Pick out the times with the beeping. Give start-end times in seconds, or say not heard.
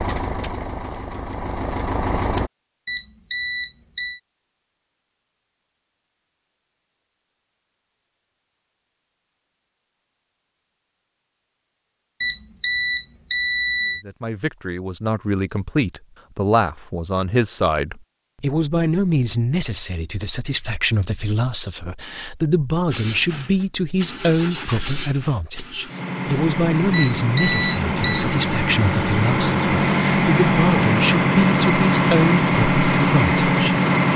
2.9-4.2, 12.2-14.1, 26.9-28.2.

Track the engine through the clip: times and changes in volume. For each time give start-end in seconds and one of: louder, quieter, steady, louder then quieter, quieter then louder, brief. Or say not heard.
0.0-2.5 brief
22.9-34.1 louder.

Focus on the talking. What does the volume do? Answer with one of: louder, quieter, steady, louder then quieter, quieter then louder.
steady.